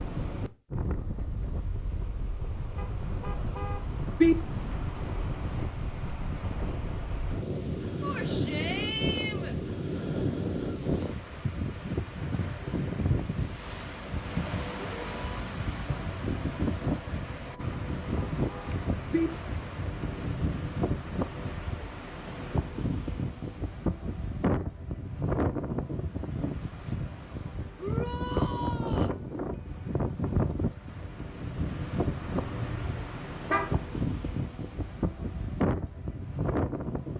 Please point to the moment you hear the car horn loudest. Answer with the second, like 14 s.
4 s.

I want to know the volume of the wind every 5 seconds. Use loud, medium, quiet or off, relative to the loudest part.
medium, loud, loud, loud, loud, loud, loud, loud.